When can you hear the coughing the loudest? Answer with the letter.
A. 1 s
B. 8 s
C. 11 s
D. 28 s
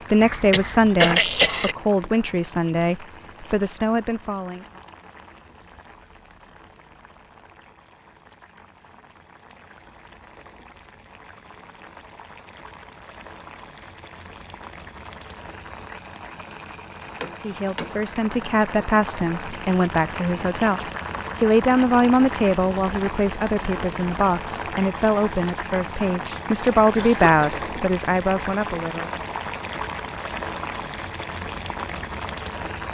A.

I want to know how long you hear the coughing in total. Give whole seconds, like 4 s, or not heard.
2 s.